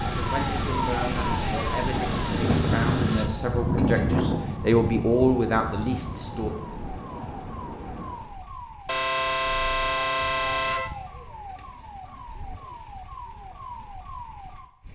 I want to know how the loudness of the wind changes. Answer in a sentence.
The volume of the wind goes up, then down.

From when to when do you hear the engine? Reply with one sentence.
You can hear the engine from 0.0 to 3.3 s.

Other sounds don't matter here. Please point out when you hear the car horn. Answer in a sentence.
The car horn can be heard from 3.8 to 4.2 s and from 8.8 to 10.9 s.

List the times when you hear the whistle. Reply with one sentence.
The whistle can't be heard in this clip.